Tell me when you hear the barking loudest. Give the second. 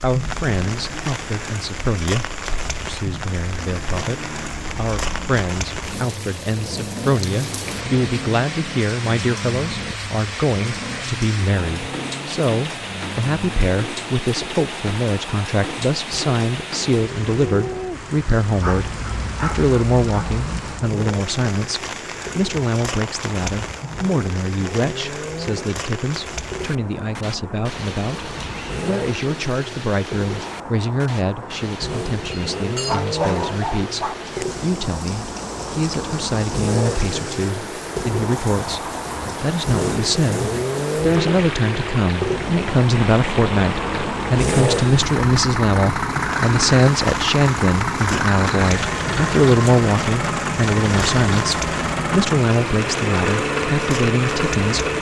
33 s.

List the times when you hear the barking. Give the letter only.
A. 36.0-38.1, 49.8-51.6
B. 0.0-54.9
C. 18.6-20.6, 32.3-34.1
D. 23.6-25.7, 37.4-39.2
C.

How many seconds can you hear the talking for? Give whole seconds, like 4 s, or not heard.
55 s.